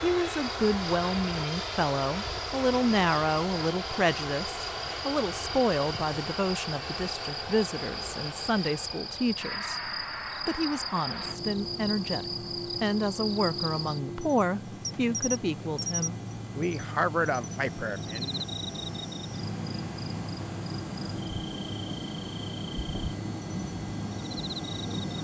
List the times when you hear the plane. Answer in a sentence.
You can hear the plane from 0.0 to 25.1 s.